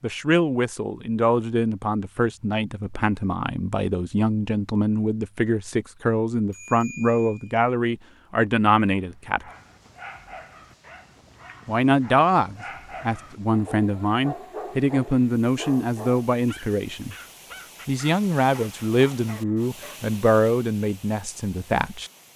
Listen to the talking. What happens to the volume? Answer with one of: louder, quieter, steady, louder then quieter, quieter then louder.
steady.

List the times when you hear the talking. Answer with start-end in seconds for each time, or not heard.
0.0-9.4, 11.7-17.1, 17.9-22.1.